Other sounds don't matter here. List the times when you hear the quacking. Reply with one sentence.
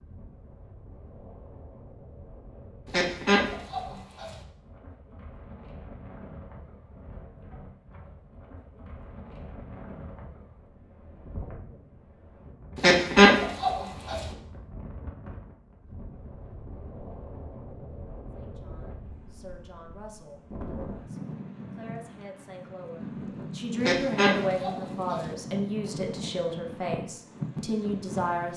You can hear the quacking from 2.9 to 4.3 s, from 12.8 to 14.2 s and from 23.8 to 25.2 s.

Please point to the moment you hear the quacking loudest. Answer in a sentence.
The loudest moment of the quacking is at 13 seconds.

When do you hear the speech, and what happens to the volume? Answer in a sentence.
The speech can be heard from 18.4 to 28.5 s, getting louder.